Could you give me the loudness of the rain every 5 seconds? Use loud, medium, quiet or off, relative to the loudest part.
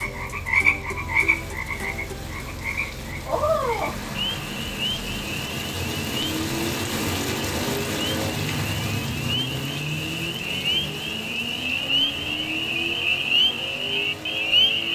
medium, loud, medium.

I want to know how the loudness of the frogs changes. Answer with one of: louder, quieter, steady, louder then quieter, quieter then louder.
quieter then louder.